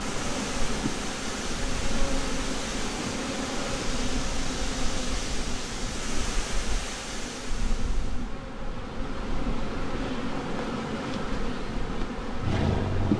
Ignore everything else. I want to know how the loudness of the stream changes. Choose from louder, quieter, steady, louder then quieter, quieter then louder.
steady.